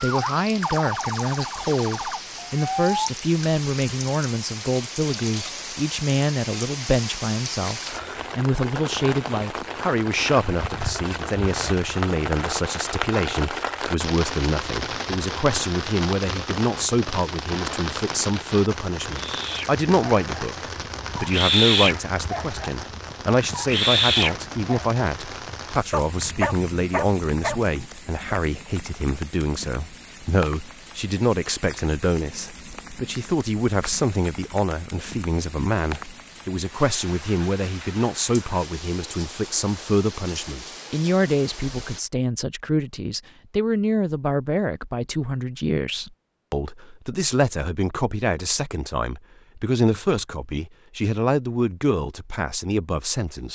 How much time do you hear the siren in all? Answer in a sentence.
You can hear the siren for 3 seconds altogether.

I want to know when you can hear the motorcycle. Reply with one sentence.
The motorcycle can't be heard in this clip.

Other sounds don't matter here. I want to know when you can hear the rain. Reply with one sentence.
You can hear the rain from 0.0 to 42.0 s.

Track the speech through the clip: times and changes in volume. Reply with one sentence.
You can hear the speech from 0.0 to 53.4 s, at a steady volume.